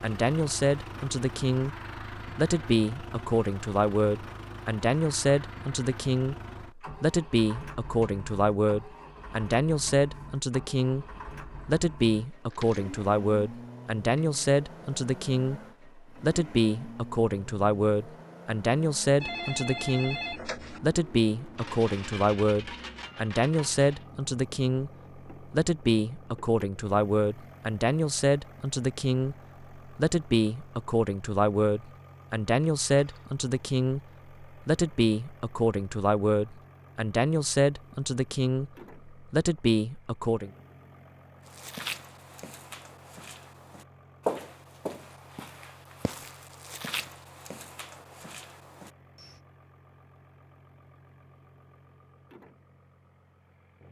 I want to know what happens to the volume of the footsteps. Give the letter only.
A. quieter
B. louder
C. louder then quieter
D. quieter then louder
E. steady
C.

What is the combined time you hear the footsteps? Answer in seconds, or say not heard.
8 s.